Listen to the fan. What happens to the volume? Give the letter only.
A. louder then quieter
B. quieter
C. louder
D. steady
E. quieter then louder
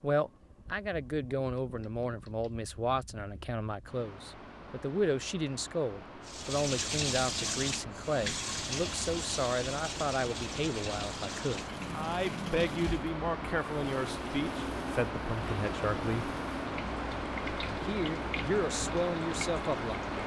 C.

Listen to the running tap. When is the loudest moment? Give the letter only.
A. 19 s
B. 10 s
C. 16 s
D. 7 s
D.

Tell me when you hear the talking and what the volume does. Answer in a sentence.
You can hear the talking from 0.0 to 16.3 s, at a steady volume; and briefly from 17.6 to 20.1 s.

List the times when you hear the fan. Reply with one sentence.
The fan can be heard from 0.0 to 20.2 s.